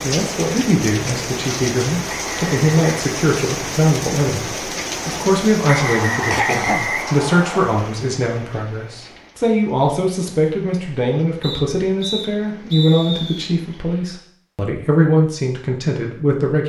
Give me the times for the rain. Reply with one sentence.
You can hear the rain from 0.0 to 14.3 s.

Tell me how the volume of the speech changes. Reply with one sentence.
The loudness of the speech stays about the same.